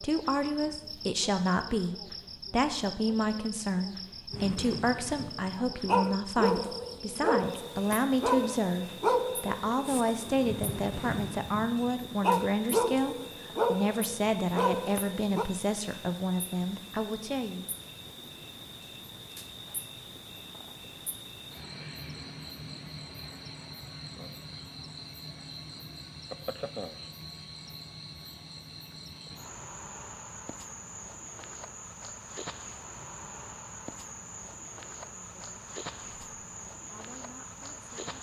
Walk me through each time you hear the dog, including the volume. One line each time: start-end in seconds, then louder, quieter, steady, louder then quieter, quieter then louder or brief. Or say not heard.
4.3-15.4 steady.